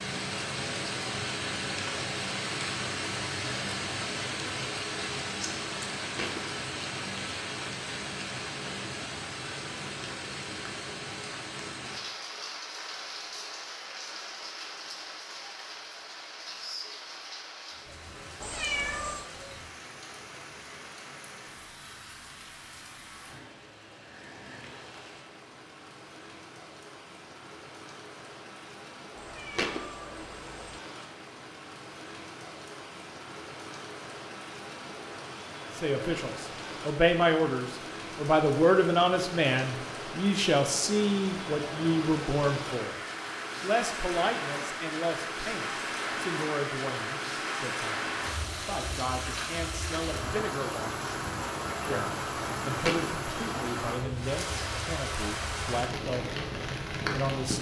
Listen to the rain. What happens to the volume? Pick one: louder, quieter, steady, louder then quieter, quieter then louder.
quieter then louder.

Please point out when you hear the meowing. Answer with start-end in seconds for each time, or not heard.
18.4-19.3, 29.1-30.8.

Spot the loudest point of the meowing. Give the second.
19 s.